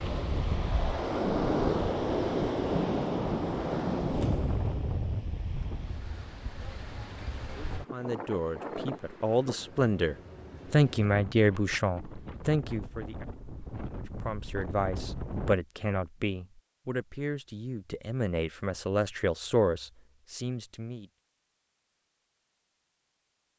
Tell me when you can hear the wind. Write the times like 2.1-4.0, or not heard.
0.0-15.6.